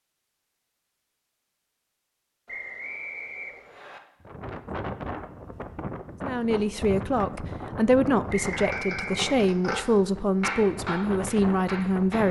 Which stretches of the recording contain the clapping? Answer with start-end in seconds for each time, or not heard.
8.4-9.8, 10.4-12.2.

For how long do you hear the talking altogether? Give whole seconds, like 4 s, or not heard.
6 s.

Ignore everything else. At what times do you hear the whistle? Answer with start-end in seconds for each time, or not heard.
2.5-4.0, 8.2-9.3.